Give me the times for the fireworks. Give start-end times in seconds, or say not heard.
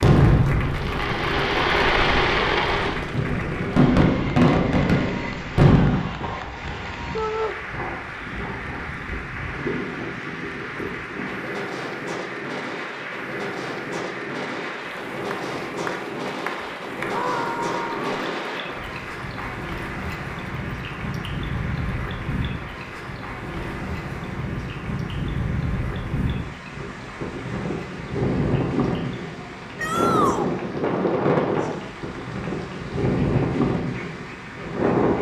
0.0-6.3.